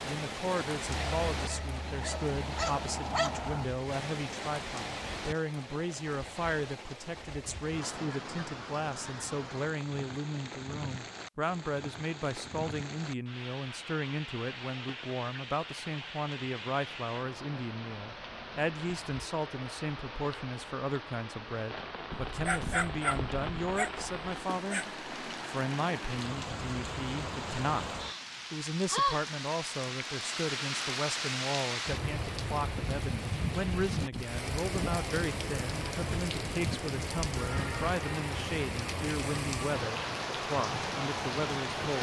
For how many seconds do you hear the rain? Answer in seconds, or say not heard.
42 s.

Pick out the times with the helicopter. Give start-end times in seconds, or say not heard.
not heard.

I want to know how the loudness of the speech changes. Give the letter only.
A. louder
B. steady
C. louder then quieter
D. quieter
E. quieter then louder
B.